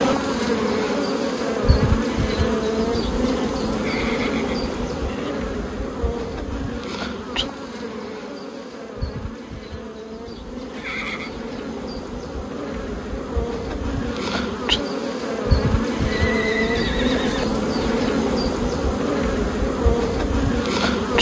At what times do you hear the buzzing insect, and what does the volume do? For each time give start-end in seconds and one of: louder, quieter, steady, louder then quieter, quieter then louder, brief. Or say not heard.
0.0-21.1 quieter then louder.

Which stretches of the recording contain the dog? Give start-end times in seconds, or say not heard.
not heard.